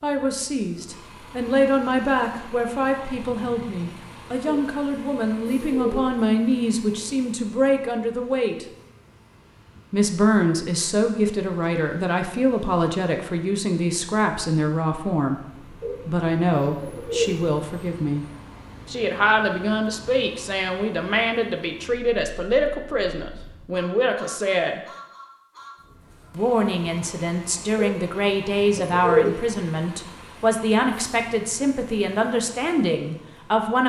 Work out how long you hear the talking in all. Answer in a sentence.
You can hear the talking for 30 seconds altogether.